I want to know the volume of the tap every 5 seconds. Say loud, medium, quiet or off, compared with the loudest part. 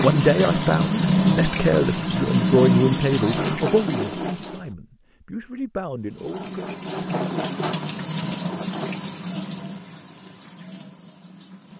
loud, medium, quiet.